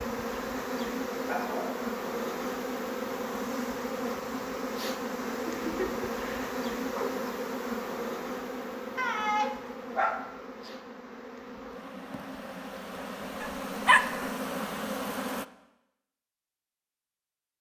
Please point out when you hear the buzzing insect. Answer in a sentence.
The buzzing insect can be heard from 0.0 to 15.4 s.